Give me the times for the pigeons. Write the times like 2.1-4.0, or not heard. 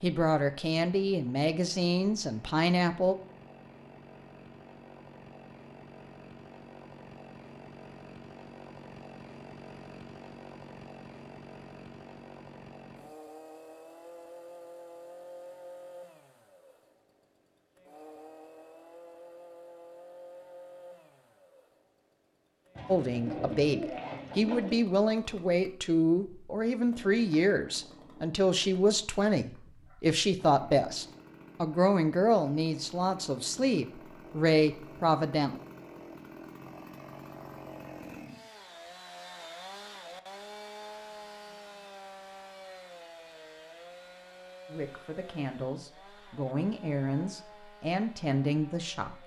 22.8-24.8.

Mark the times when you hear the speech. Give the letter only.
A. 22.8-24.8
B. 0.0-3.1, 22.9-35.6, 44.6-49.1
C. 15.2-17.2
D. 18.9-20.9
B.